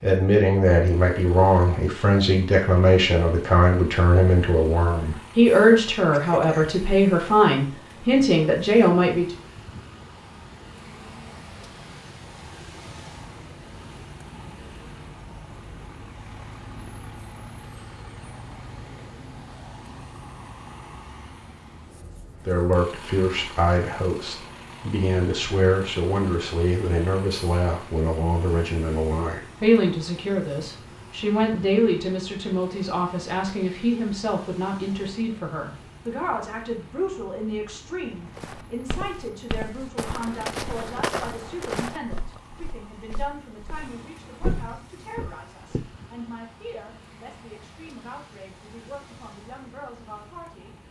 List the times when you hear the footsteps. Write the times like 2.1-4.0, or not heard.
38.4-45.9.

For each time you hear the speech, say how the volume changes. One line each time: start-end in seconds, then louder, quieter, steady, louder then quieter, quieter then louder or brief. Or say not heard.
0.0-9.3 steady
22.4-50.8 quieter.